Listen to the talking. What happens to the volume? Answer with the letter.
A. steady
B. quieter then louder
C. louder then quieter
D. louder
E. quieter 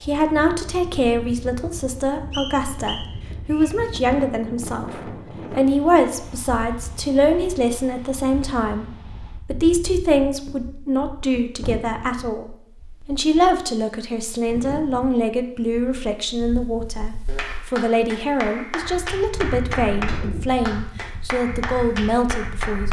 A.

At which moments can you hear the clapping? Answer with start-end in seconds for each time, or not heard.
17.2-22.8.